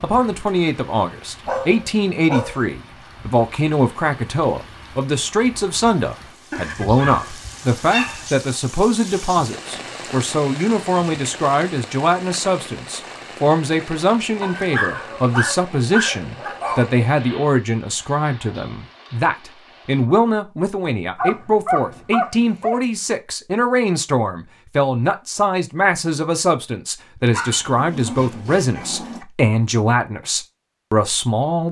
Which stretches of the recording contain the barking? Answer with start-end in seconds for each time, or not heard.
1.4-2.6, 6.5-8.3, 14.4-17.0, 21.1-22.8, 27.3-29.2.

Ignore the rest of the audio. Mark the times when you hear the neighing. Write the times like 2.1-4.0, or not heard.
not heard.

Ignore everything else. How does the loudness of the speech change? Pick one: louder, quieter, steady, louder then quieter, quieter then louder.
steady.